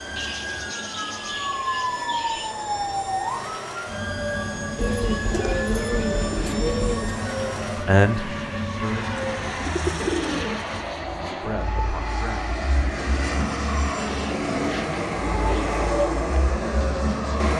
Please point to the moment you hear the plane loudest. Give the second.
16 s.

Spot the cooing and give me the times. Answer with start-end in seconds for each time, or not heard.
0.1-2.5, 4.8-7.2, 9.2-10.8, 14.2-15.8.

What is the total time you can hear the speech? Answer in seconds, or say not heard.
3 s.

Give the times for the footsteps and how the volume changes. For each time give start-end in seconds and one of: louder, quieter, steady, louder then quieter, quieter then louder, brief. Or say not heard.
not heard.